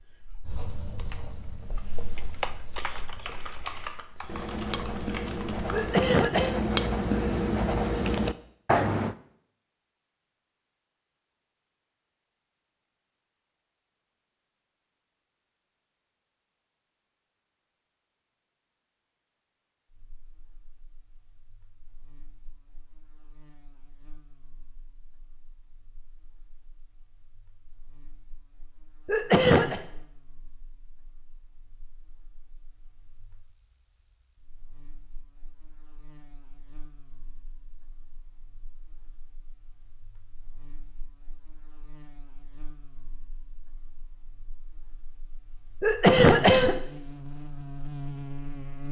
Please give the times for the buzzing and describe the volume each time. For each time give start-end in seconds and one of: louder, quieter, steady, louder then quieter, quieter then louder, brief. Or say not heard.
19.9-48.8 louder.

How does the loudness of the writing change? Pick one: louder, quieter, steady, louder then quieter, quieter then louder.
quieter then louder.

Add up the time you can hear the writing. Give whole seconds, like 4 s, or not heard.
9 s.